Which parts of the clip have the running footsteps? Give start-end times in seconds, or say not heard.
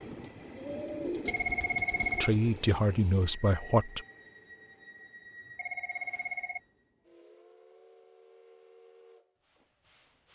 not heard.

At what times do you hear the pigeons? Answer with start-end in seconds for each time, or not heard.
0.1-2.4.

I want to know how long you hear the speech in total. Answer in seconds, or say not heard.
2 s.